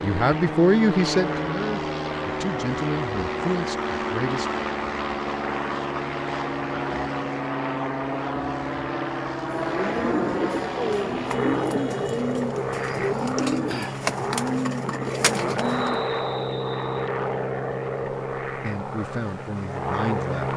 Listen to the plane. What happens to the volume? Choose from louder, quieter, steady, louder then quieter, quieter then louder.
steady.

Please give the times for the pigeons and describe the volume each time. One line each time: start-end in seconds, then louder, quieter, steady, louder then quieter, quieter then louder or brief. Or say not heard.
9.6-16.1 steady.